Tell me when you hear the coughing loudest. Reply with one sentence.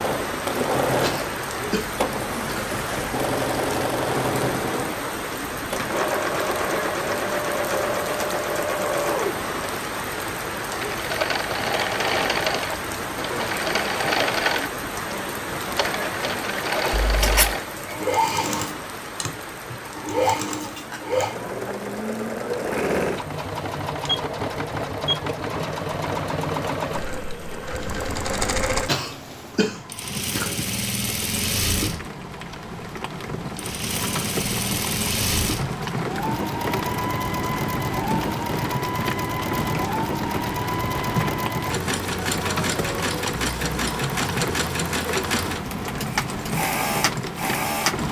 The loudest moment of the coughing is at 29 seconds.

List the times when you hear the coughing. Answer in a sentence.
The coughing can be heard from 1.0 to 2.8 s and from 28.9 to 30.7 s.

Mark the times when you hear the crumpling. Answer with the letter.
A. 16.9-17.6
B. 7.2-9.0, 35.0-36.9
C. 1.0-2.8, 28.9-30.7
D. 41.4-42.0
A.